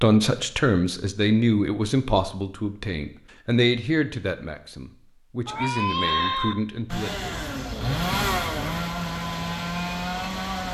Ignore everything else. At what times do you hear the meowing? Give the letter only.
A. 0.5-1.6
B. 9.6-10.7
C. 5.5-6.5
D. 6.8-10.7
C.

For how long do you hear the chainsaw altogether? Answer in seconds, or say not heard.
4 s.